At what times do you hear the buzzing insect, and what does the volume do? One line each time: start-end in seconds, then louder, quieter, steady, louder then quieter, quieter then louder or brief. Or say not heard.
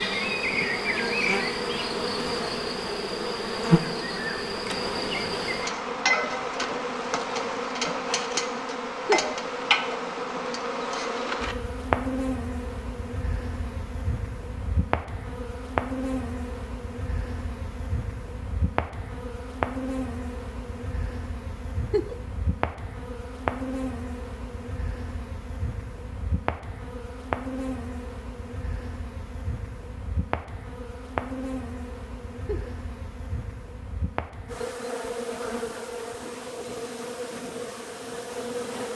0.0-38.9 quieter.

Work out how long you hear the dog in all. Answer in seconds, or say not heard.
not heard.